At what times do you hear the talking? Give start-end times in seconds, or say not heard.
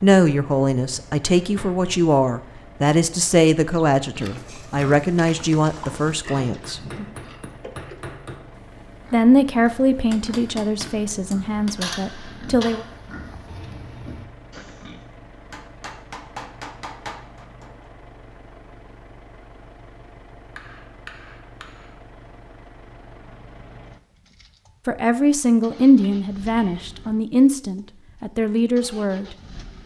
0.0-6.8, 9.1-12.8, 24.9-29.2.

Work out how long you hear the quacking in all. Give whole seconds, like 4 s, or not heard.
not heard.